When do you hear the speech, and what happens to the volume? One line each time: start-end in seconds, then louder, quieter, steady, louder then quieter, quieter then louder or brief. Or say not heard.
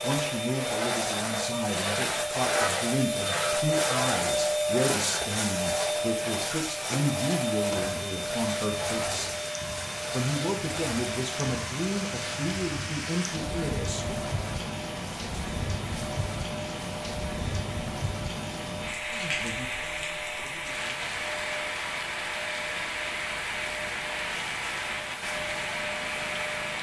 0.0-9.3 steady
10.1-14.2 steady
19.1-21.1 brief.